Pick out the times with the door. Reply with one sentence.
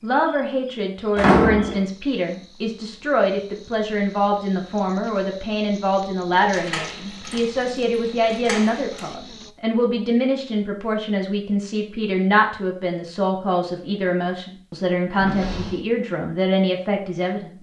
You can hear the door from 1.1 to 1.9 s, from 6.5 to 9.1 s and from 15.2 to 15.8 s.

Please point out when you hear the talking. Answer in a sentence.
The talking can be heard from 0.0 to 17.5 s.